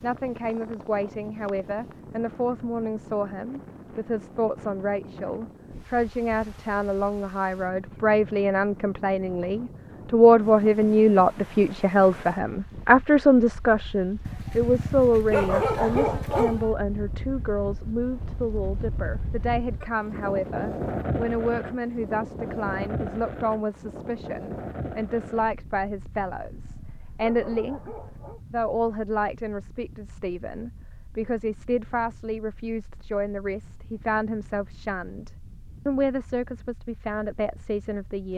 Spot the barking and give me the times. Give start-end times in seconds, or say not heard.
14.2-16.8, 26.4-28.4.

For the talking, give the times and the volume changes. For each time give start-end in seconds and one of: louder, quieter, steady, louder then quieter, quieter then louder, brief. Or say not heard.
0.0-27.9 louder then quieter
28.5-38.3 steady.